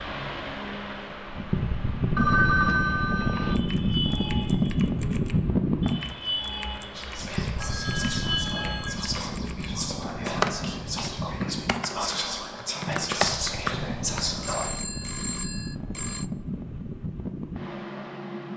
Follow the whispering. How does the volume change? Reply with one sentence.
The volume of the whispering goes up.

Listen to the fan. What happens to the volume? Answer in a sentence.
The volume of the fan goes down.